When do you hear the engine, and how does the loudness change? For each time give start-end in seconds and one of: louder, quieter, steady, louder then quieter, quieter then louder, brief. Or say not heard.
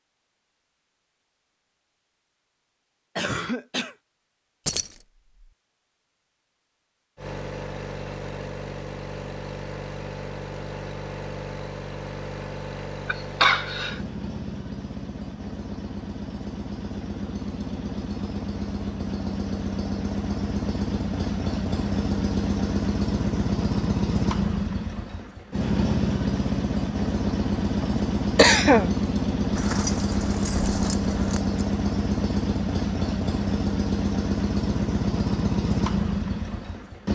7.2-37.0 louder.